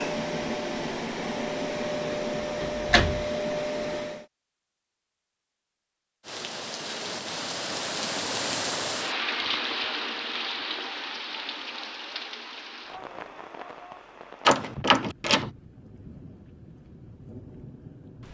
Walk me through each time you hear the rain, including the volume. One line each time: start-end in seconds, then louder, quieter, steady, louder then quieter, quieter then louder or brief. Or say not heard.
6.2-18.2 quieter.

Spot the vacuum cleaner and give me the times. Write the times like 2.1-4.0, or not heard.
0.0-4.2.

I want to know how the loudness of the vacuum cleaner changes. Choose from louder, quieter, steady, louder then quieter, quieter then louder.
steady.